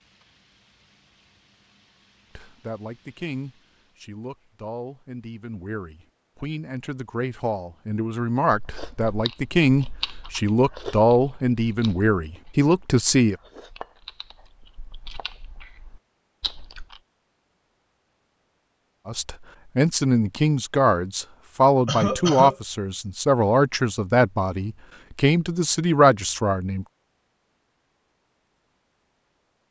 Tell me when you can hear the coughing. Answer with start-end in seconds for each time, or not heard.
21.9-22.6.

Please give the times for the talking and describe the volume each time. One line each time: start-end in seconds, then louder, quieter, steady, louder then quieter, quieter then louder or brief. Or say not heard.
2.4-13.3 louder
19.1-26.9 steady.